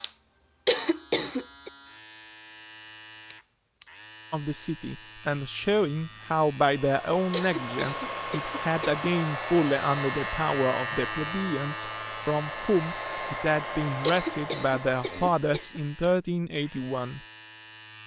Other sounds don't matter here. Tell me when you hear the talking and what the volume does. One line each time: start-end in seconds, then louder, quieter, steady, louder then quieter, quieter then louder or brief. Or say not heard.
4.3-17.2 steady.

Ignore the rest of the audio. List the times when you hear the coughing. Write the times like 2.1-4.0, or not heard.
0.7-1.7, 7.3-9.1, 14.0-15.8.